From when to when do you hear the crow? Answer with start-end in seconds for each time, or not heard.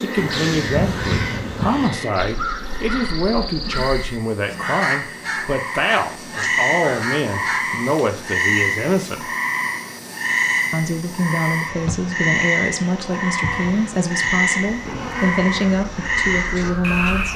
0.1-7.6, 15.8-17.3.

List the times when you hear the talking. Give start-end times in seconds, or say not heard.
0.0-9.3, 10.7-17.3.